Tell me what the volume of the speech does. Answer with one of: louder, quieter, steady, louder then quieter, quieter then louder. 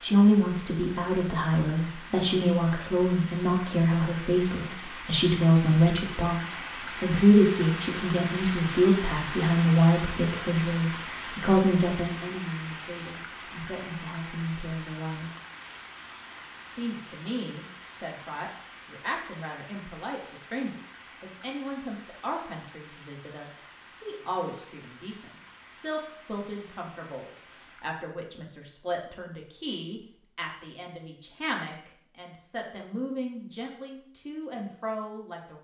quieter.